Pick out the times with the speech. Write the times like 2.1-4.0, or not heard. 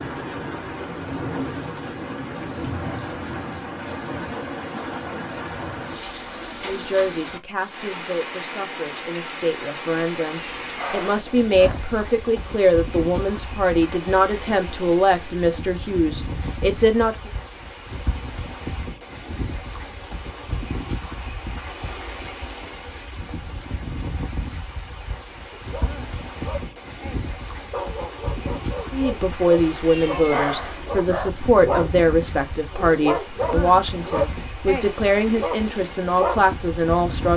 6.6-17.3, 28.9-37.3.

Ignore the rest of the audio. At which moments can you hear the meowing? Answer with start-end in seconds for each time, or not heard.
10.3-11.8, 29.9-31.3.